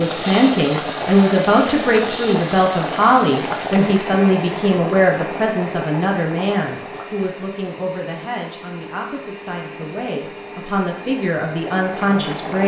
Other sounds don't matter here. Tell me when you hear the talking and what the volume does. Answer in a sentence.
The talking can be heard from 0.0 to 12.6 s, getting quieter then louder.